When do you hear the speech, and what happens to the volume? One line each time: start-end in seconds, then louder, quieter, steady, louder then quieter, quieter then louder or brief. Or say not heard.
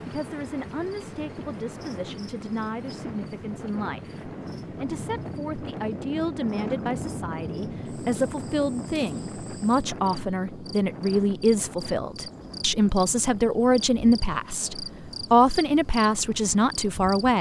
0.1-17.3 louder.